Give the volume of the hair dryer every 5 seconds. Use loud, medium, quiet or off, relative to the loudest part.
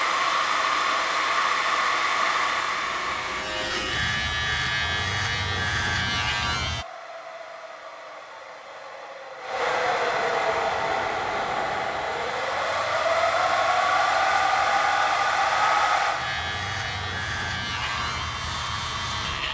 loud, medium, loud, loud.